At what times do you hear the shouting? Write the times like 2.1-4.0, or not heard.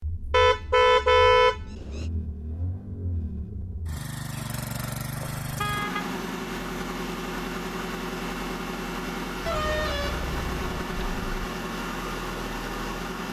not heard.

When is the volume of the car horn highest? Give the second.
1 s.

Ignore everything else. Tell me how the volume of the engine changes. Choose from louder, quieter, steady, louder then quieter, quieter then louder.
louder.